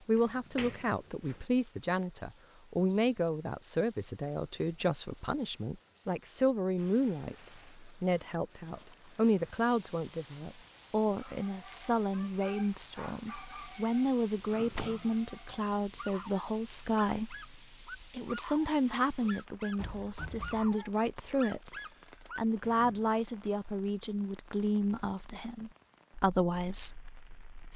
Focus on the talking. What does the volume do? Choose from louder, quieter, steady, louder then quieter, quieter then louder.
steady.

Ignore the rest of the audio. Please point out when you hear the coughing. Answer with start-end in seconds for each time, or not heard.
not heard.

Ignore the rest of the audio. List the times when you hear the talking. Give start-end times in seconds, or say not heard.
0.1-21.8, 22.4-27.7.